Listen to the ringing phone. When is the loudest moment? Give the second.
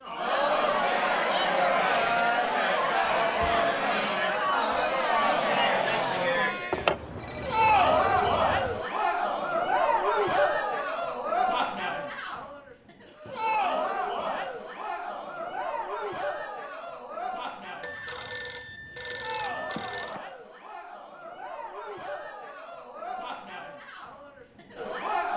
7 s.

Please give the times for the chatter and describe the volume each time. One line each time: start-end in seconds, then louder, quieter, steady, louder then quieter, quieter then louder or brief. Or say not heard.
0.1-25.3 quieter.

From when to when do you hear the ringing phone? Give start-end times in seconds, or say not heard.
6.7-8.8, 17.8-20.2.